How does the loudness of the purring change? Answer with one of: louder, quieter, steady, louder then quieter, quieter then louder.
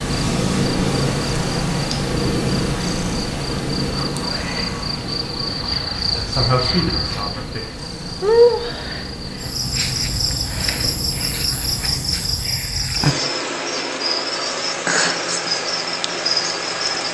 quieter.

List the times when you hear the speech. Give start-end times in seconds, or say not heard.
6.0-7.6.